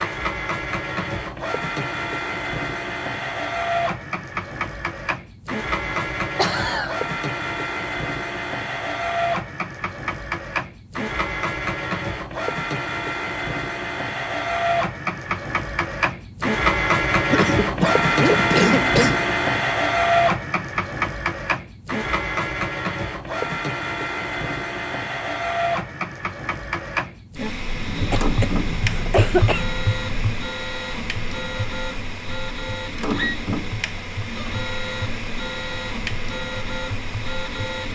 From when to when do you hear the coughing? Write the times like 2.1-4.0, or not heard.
5.9-7.0, 17.3-19.2, 28.0-29.7.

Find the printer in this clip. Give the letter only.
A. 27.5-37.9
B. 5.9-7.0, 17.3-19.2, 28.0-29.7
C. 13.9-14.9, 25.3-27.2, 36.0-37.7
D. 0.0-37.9
D.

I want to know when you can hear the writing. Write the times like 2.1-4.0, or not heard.
27.5-37.9.